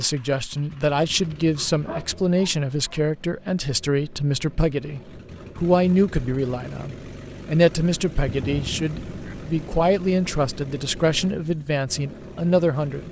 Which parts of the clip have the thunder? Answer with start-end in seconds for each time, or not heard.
8.2-9.8.